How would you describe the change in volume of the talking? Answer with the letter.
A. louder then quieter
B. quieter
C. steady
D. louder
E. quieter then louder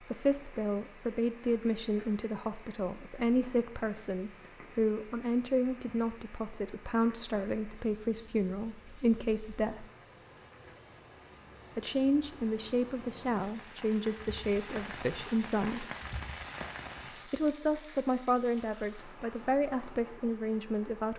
C.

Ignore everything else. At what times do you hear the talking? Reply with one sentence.
The talking can be heard from 0.1 to 9.8 s, from 11.8 to 15.8 s and from 17.2 to 21.1 s.